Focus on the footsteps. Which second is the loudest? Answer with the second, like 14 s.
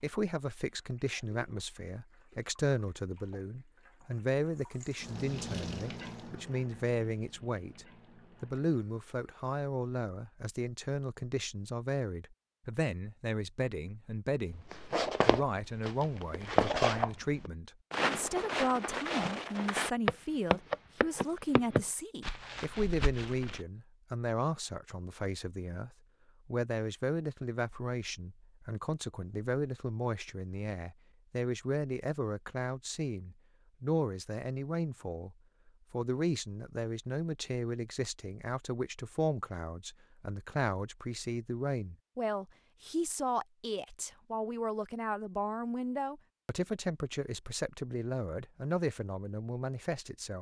17 s.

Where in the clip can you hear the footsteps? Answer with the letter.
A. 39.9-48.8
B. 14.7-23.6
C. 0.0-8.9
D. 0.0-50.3
B.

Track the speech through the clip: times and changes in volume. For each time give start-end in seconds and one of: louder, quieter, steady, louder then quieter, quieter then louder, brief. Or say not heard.
0.0-50.3 steady.